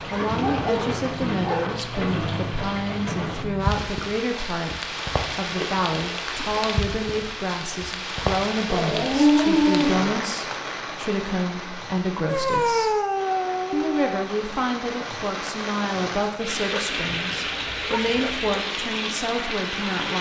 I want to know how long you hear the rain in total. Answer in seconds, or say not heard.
20 s.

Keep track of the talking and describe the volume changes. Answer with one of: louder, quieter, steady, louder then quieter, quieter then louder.
steady.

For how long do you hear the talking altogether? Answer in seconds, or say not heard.
19 s.